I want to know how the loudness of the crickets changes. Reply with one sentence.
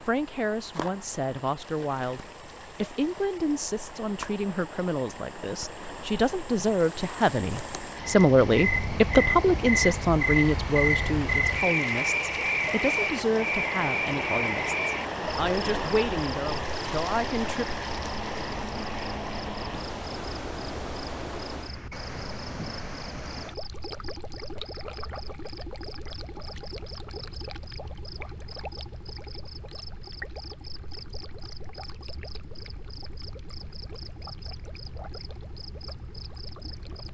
The volume of the crickets goes up, then down.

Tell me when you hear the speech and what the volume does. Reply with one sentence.
The speech can be heard from 0.1 to 17.8 s, getting louder then quieter.